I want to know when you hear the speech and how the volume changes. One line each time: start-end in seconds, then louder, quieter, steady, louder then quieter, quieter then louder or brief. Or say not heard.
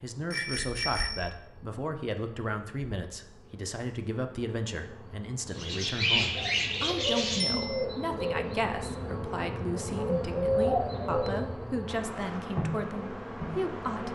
0.0-14.1 steady.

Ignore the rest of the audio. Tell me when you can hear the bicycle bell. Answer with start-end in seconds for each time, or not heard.
0.3-1.3, 7.3-7.8.